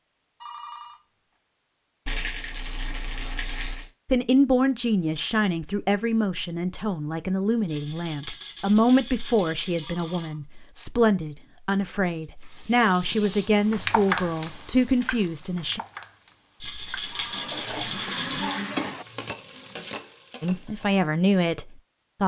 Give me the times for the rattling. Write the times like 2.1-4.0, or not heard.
2.0-3.9, 7.7-10.3, 16.6-18.6.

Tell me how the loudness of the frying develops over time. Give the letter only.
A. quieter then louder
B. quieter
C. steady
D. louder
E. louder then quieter
A.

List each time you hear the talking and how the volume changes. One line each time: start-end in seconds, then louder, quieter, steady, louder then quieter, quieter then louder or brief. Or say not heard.
4.0-15.8 steady
20.4-22.2 brief.